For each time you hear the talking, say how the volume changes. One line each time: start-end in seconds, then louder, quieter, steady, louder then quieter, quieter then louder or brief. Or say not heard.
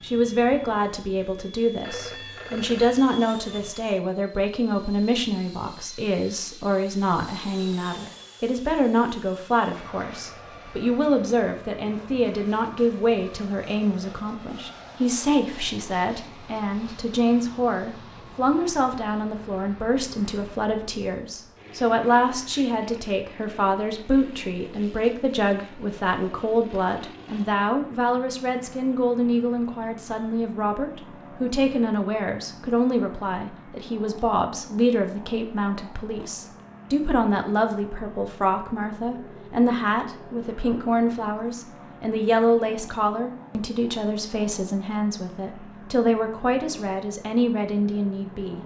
0.0-48.6 steady.